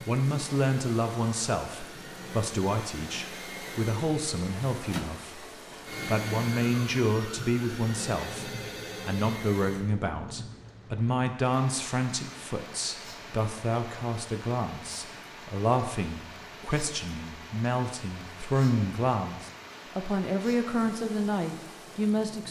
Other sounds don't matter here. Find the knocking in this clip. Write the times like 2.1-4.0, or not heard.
not heard.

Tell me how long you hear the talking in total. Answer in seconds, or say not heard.
22 s.